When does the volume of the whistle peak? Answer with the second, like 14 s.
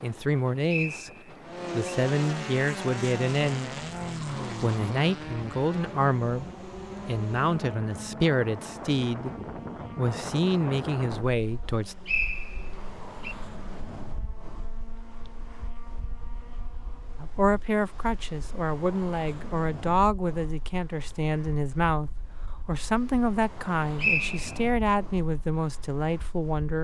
24 s.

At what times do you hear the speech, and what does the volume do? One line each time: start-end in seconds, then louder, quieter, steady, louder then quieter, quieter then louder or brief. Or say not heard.
0.0-1.1 brief
1.7-3.7 brief
4.6-6.5 brief
7.0-9.3 brief
9.9-11.9 brief
17.2-26.7 steady.